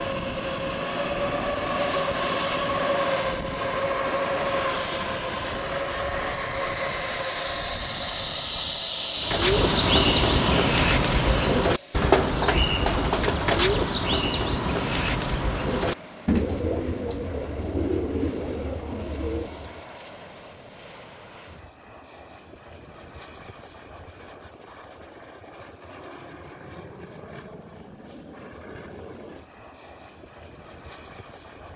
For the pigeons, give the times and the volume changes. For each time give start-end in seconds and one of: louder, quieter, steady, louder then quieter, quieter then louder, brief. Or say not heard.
9.2-19.8 quieter.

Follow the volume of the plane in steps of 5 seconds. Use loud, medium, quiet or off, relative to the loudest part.
loud, loud, loud, quiet, quiet, quiet, quiet.